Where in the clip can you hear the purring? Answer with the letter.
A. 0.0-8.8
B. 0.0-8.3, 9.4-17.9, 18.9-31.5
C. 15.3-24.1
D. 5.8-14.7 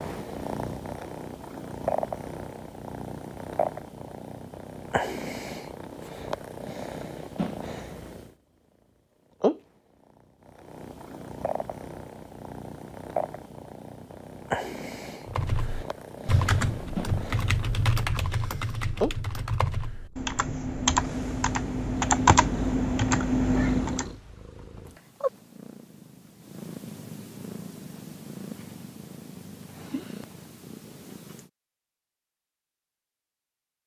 B.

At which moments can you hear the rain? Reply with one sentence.
You can't hear the rain here.